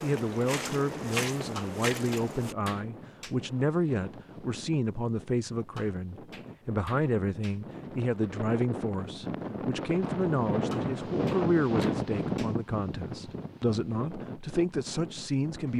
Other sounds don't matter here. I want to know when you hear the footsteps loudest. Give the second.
1 s.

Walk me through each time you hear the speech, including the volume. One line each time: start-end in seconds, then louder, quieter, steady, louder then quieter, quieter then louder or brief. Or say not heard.
0.0-15.7 steady.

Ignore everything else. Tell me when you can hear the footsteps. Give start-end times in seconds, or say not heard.
0.0-2.5.